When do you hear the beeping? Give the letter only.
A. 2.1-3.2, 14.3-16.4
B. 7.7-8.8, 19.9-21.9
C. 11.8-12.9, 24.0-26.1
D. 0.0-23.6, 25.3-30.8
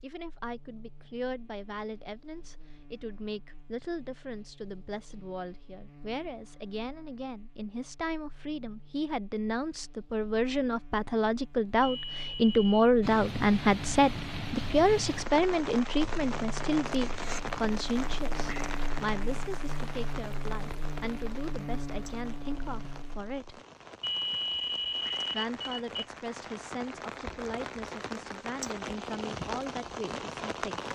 C.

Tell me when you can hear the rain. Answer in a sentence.
The rain can be heard from 13.0 to 30.8 s.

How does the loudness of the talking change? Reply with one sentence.
The volume of the talking goes up, then down.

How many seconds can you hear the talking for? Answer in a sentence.
You can hear the talking for 29 seconds altogether.